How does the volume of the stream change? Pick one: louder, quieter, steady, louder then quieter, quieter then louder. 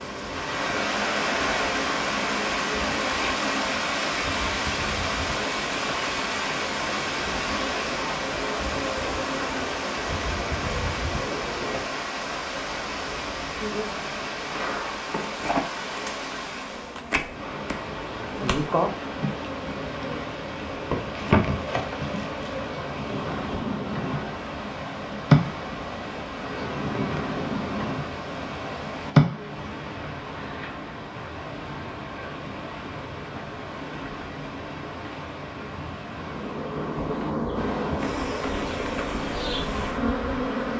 quieter.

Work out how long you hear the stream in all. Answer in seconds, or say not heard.
41 s.